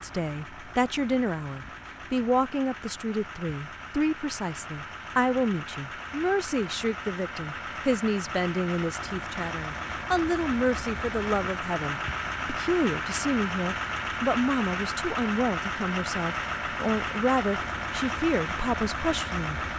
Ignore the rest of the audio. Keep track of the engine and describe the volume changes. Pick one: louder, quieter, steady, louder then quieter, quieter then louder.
louder.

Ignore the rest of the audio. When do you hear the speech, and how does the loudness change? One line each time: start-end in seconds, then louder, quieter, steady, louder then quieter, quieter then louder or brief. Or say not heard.
0.0-19.6 steady.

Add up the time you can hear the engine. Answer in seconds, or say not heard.
20 s.